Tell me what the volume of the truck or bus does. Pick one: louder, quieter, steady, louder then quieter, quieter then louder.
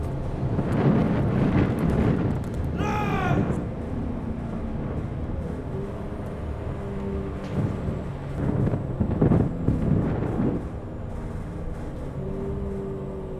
steady.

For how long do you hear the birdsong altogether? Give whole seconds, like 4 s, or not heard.
not heard.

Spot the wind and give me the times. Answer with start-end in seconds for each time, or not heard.
0.0-10.6.